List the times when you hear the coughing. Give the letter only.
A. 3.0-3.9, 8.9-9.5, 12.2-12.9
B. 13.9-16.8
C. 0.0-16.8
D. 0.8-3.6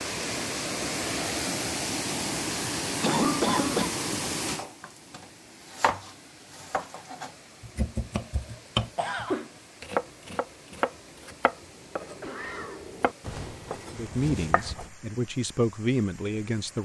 A.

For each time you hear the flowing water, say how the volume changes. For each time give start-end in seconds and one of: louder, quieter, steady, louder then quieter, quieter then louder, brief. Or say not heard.
0.0-16.8 quieter.